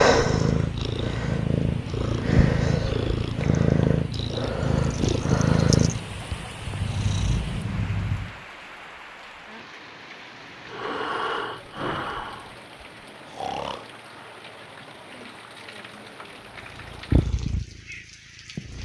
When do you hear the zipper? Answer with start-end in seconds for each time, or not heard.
not heard.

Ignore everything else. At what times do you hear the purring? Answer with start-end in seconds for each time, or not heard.
0.0-8.3, 16.6-18.8.